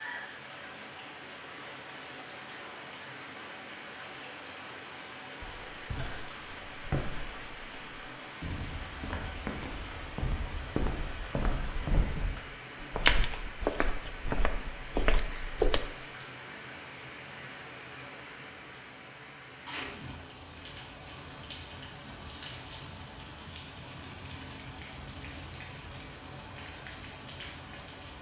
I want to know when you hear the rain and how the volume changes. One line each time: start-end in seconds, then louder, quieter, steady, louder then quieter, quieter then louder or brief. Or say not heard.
0.0-28.1 steady.